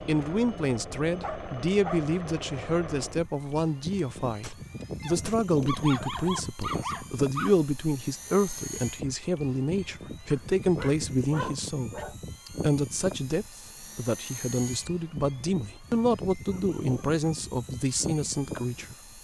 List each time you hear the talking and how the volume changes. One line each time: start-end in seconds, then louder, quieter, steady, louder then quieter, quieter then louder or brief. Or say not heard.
0.1-18.9 steady.